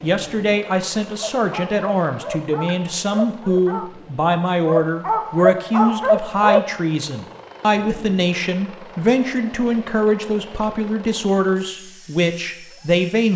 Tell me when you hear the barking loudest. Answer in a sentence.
The volume of the barking peaks at 6 seconds.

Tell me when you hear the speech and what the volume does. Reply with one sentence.
The speech can be heard from 0.0 to 13.3 s, at a steady volume.